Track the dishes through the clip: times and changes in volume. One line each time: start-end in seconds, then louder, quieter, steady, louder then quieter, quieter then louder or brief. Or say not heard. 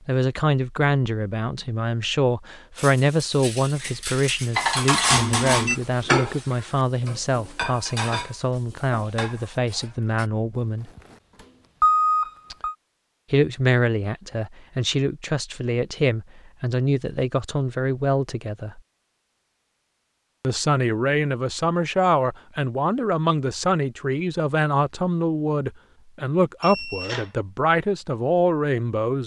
2.8-10.2 louder then quieter.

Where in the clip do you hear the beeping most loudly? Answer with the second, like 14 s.
12 s.